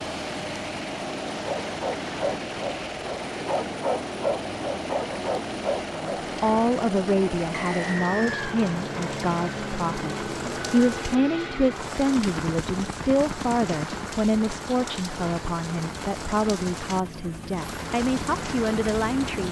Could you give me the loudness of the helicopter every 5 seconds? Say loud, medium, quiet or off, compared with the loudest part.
loud, loud, loud, medium.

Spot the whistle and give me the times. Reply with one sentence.
You can hear the whistle from 7.5 to 8.6 s.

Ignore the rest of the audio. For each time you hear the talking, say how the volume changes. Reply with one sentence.
The talking can be heard from 6.0 to 19.4 s, at a steady volume.